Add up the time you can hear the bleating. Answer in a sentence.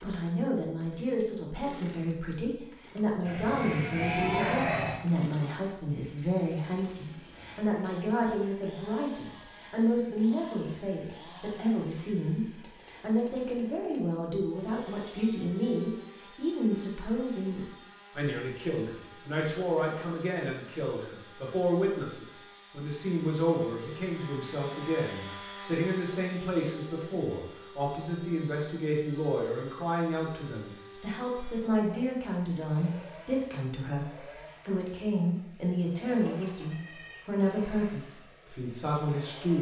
You can hear the bleating for 3 seconds altogether.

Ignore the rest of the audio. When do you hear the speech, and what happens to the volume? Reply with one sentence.
You can hear the speech from 0.0 to 39.5 s, at a steady volume.